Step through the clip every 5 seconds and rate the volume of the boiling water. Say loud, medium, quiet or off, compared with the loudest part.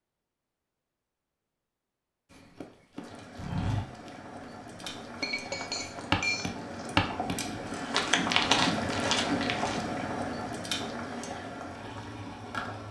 medium, loud, loud.